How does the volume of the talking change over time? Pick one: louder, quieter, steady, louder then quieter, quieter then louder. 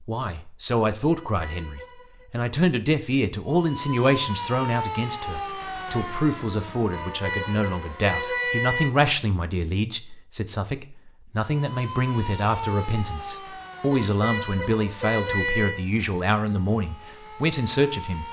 steady.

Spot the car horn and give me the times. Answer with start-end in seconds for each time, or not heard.
1.1-2.2, 6.9-8.9, 13.9-15.8.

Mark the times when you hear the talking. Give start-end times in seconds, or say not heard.
0.0-18.2.